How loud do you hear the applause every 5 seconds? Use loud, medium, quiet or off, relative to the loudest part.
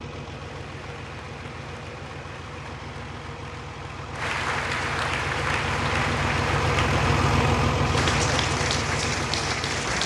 medium, loud.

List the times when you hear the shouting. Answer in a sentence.
You can't hear the shouting here.